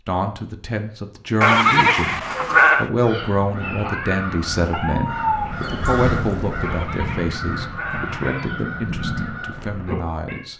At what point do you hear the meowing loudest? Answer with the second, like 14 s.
5 s.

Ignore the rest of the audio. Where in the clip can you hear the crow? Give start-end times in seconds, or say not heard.
2.9-10.4.